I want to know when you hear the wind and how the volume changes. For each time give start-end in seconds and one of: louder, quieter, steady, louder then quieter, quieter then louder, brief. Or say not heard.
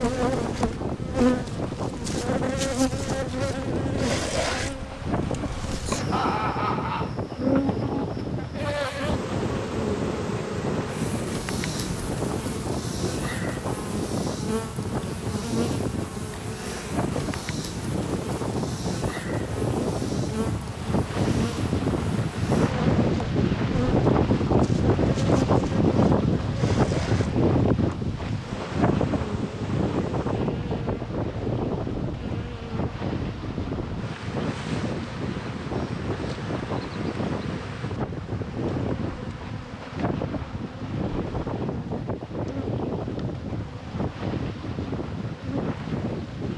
0.0-46.5 louder then quieter.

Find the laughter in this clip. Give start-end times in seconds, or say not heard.
6.1-7.2.